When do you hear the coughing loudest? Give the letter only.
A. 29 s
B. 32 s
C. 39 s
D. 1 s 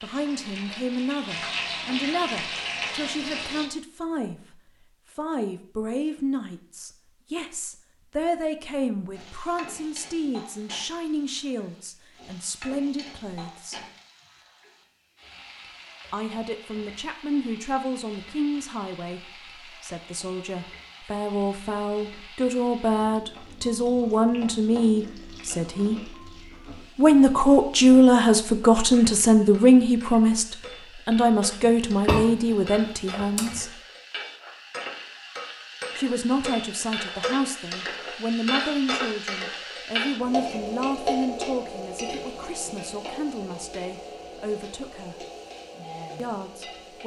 B.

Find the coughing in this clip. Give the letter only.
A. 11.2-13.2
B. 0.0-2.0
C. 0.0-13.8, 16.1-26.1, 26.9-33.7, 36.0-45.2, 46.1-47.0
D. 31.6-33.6
D.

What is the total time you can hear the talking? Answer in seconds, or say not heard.
41 s.